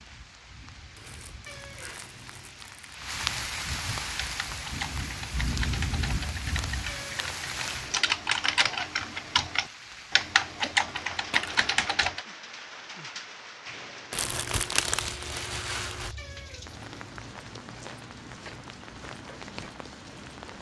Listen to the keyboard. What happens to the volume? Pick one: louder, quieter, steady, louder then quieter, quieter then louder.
louder.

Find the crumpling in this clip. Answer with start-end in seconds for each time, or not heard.
0.9-3.0, 11.1-11.7, 14.1-16.1.